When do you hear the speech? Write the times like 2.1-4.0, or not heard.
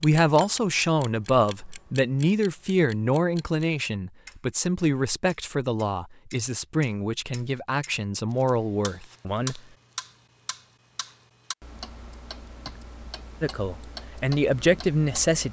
0.0-9.6, 13.4-15.4.